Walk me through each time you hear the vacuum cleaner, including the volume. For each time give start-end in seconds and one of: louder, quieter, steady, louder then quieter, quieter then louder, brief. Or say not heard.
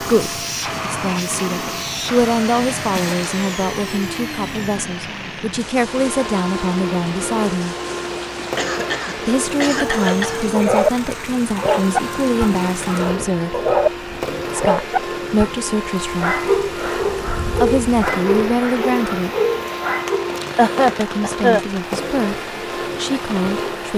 0.0-23.9 steady.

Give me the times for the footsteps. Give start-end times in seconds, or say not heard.
not heard.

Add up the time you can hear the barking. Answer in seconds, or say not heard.
10 s.